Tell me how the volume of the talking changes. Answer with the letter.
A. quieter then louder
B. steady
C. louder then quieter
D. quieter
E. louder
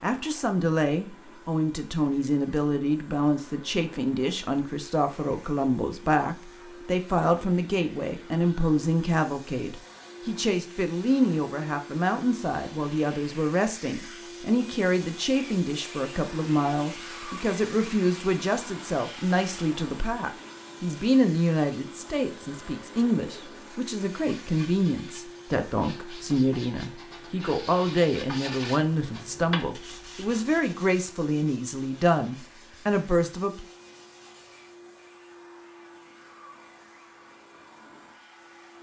B.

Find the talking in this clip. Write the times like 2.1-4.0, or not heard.
0.0-33.6.